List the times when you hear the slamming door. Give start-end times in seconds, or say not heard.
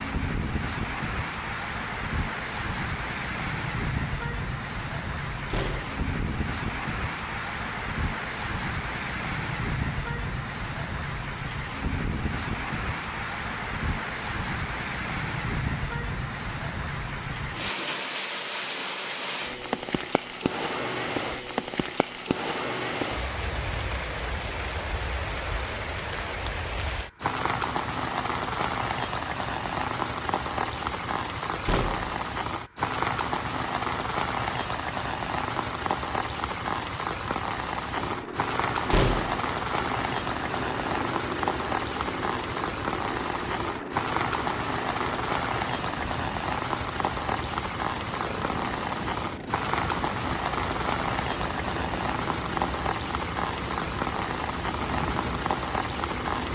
5.5-6.0, 31.6-32.1, 38.9-39.5.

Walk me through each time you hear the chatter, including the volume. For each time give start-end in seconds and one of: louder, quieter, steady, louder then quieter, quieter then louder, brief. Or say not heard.
not heard.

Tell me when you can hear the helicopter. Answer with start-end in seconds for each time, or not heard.
37.9-56.5.